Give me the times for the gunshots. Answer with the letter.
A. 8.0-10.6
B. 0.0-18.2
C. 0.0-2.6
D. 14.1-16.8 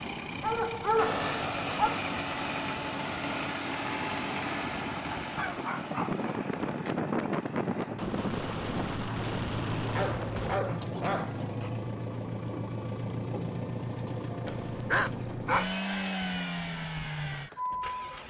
A.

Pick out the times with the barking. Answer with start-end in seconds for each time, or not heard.
0.4-2.0, 5.2-7.0, 9.9-11.7, 14.4-15.8.